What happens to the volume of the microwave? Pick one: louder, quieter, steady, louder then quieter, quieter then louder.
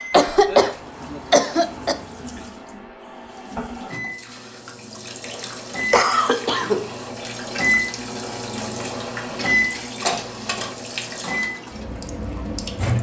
louder then quieter.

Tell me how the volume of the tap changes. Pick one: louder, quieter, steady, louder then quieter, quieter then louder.
louder.